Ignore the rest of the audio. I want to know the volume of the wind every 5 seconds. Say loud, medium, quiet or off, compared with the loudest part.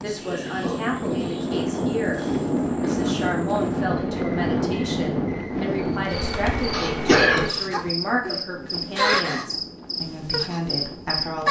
loud, medium, quiet.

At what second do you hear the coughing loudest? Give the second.
7 s.